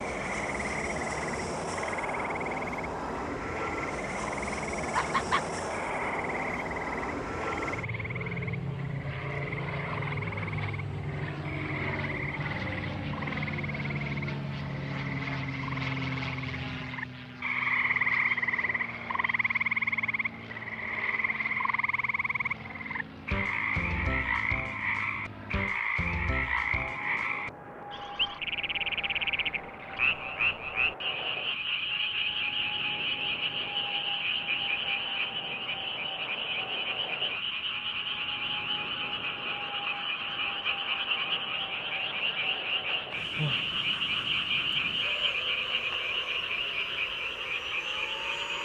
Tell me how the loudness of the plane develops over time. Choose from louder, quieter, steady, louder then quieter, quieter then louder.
quieter.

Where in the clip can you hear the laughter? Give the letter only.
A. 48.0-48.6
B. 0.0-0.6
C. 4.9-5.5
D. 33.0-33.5
C.